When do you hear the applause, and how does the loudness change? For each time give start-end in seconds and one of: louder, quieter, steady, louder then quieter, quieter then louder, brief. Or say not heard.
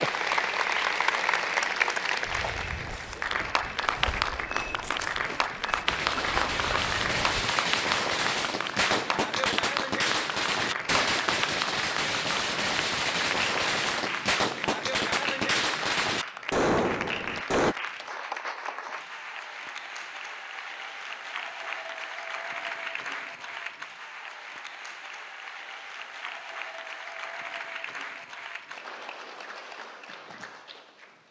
0.0-31.2 quieter.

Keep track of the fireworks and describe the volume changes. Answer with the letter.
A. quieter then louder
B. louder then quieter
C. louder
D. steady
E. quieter
D.